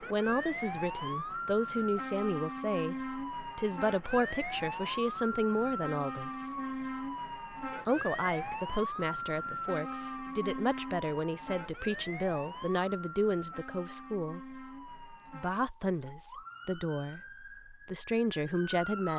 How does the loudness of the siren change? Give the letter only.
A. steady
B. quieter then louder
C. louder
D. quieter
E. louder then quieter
D.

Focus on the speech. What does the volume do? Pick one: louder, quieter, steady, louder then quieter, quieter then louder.
steady.